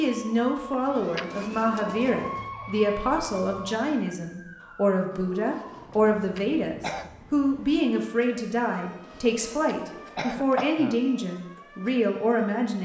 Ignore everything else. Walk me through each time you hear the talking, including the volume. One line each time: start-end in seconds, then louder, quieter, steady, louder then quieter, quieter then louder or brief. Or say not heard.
0.0-12.8 steady.